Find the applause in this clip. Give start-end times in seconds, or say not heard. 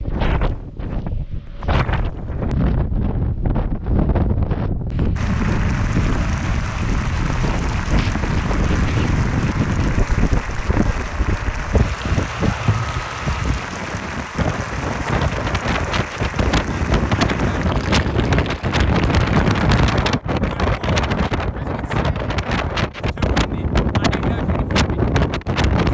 5.2-19.9.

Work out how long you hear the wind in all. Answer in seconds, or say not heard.
26 s.